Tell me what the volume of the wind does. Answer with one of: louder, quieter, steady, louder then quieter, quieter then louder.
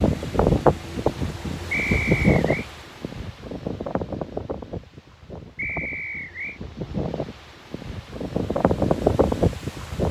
quieter then louder.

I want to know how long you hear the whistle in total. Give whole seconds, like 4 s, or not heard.
2 s.